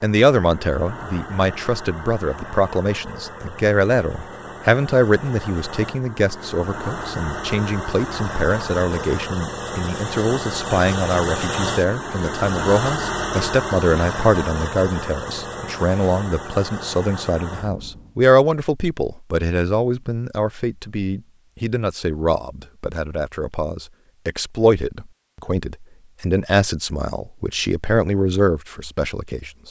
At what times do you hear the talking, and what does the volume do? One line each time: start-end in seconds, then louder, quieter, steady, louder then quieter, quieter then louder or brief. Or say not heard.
0.0-29.6 steady.